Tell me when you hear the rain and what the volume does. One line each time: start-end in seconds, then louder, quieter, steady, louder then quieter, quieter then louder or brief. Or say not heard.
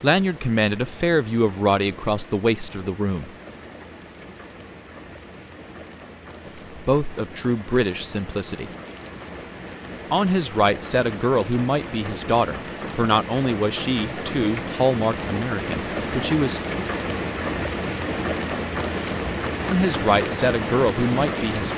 0.0-21.7 louder.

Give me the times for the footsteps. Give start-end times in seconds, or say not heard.
not heard.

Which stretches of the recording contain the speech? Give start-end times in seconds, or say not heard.
0.0-3.3, 6.5-8.7, 10.1-16.7, 19.7-21.7.